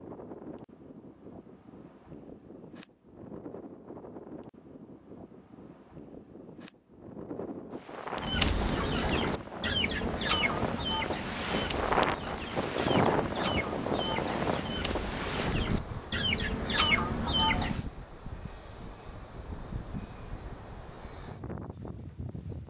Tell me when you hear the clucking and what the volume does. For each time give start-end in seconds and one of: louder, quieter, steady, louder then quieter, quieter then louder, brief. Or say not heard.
8.2-17.9 quieter then louder.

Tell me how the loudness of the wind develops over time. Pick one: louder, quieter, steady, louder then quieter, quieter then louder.
louder then quieter.